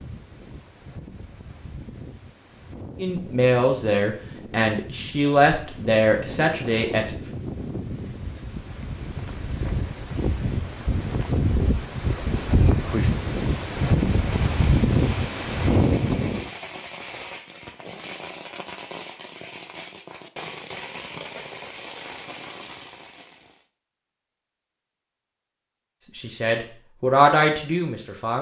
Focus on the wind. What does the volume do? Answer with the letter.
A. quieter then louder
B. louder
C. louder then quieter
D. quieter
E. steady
B.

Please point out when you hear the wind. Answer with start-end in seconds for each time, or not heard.
0.0-16.5.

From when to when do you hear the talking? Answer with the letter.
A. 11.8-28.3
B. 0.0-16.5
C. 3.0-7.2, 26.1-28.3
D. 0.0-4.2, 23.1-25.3
C.